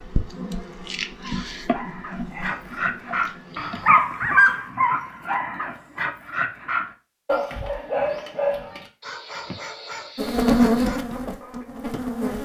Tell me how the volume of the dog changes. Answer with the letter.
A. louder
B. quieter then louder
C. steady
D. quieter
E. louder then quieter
E.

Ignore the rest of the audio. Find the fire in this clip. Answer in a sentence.
The fire can't be heard in this clip.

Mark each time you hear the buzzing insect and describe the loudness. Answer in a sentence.
The buzzing insect can be heard from 0.0 to 4.0 s, getting quieter; and briefly from 10.2 to 12.3 s.